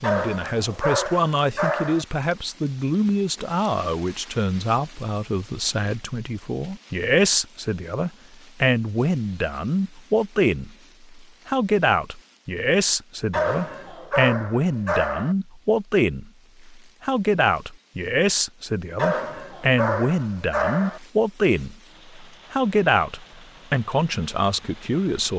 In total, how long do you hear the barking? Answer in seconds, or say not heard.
6 s.